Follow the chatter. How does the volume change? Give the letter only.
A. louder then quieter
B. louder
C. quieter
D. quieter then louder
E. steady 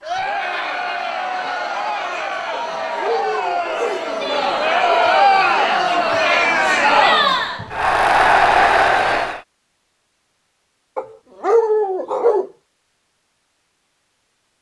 B.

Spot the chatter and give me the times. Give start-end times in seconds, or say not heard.
0.0-9.4.